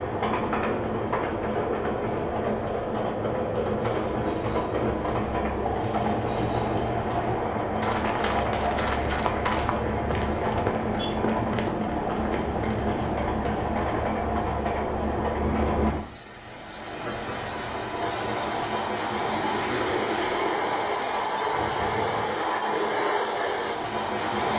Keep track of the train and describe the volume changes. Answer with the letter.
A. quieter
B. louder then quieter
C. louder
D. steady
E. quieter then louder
D.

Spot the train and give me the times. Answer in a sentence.
You can hear the train from 0.0 to 24.5 s.